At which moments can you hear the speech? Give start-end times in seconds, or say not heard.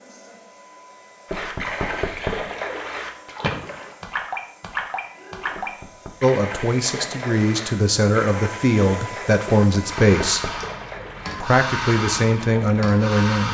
6.2-10.4, 11.4-13.4.